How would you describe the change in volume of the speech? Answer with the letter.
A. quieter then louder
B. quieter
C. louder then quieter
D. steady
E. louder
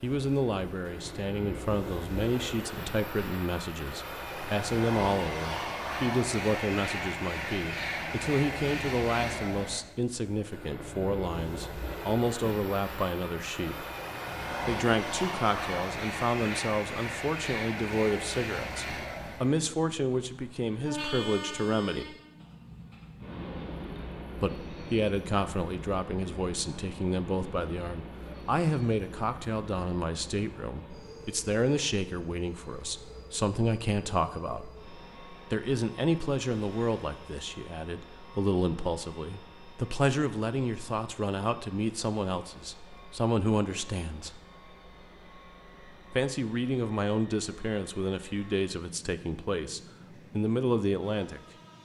D.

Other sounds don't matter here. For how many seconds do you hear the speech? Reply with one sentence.
The speech can be heard for 46 seconds in total.